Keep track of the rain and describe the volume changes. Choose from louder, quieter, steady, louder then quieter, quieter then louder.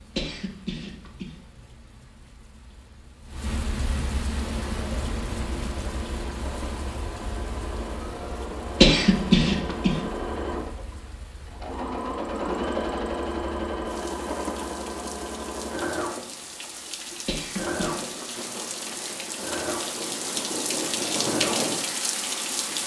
quieter then louder.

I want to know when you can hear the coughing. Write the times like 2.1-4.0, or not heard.
0.1-1.3, 8.8-9.9, 17.2-18.1.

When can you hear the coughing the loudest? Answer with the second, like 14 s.
9 s.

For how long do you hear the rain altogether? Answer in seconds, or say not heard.
23 s.